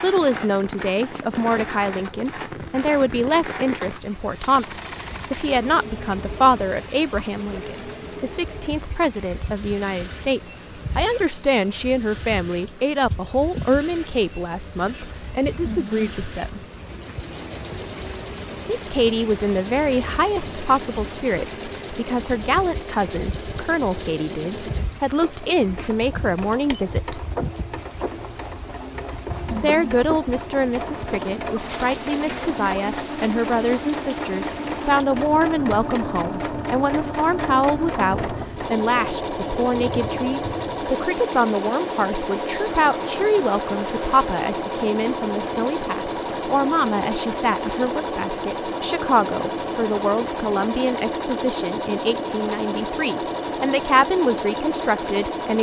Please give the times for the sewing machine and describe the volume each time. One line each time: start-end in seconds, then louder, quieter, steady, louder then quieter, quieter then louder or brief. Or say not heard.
0.0-55.5 louder.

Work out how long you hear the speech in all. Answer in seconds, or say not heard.
51 s.